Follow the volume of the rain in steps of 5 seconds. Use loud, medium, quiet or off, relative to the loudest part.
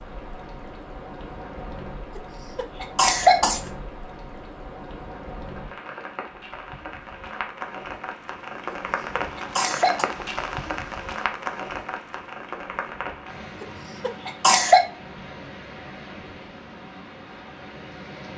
medium, loud, loud, medium.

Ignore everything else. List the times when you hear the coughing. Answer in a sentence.
You can hear the coughing from 2.1 to 3.6 s, from 8.7 to 10.1 s and from 13.6 to 14.8 s.